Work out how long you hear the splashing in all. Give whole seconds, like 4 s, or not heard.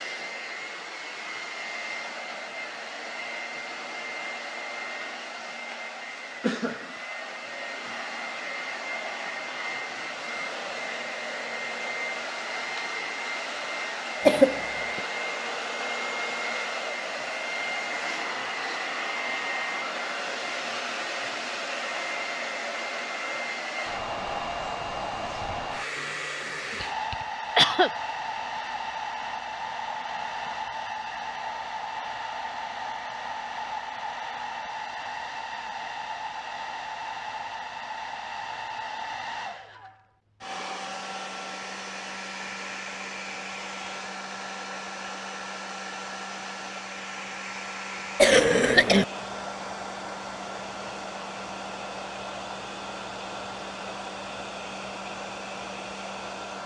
not heard.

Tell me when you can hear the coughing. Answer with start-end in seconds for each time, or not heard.
14.2-15.0, 26.8-27.9, 48.1-49.0.